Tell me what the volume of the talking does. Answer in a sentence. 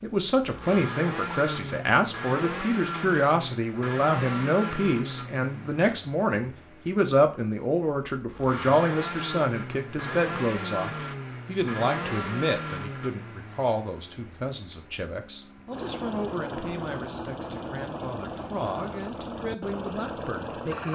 The volume of the talking goes down.